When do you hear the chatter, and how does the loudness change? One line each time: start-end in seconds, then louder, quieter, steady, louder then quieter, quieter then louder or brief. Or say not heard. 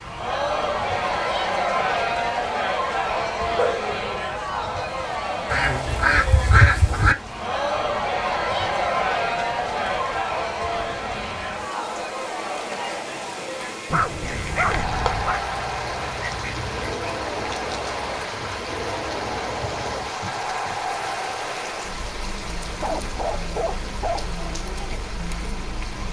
0.0-26.0 quieter.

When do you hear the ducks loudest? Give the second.
7 s.